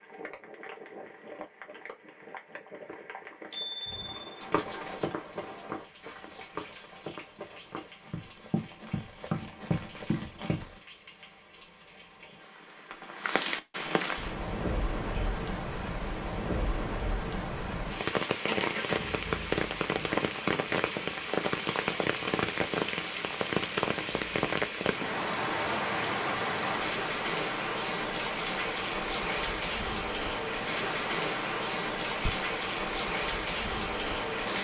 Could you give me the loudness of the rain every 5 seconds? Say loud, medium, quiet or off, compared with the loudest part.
quiet, quiet, medium, loud, loud, loud, loud.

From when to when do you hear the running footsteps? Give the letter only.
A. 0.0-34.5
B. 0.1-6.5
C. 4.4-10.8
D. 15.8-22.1
C.